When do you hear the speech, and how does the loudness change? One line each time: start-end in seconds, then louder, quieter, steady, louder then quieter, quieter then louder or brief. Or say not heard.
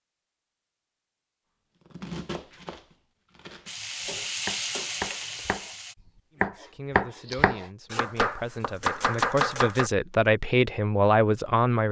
6.3-11.8 louder.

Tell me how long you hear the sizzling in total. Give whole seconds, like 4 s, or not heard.
2 s.